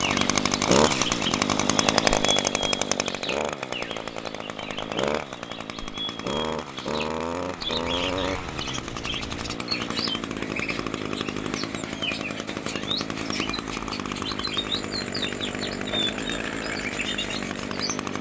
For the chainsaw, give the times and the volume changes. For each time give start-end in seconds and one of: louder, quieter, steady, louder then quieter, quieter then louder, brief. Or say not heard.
0.0-18.1 quieter.